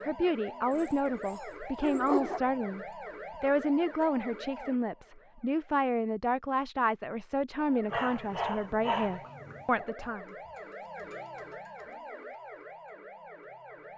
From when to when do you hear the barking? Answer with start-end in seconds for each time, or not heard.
0.7-2.4, 7.9-9.7.